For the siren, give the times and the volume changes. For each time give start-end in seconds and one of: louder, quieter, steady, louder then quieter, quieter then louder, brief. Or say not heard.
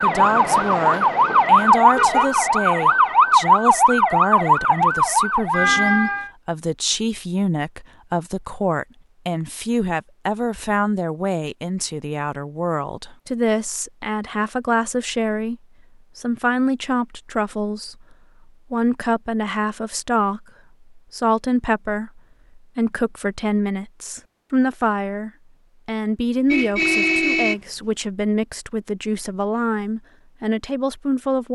0.0-6.3 steady.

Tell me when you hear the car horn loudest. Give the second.
27 s.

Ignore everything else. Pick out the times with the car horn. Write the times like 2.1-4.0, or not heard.
1.9-2.4, 26.5-27.6.